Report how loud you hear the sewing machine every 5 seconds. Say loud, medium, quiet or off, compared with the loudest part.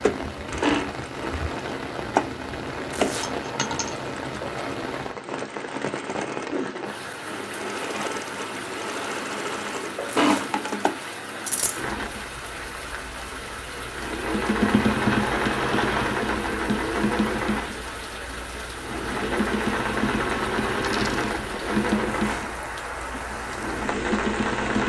loud, medium, loud, loud, loud.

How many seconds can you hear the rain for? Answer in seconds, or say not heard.
25 s.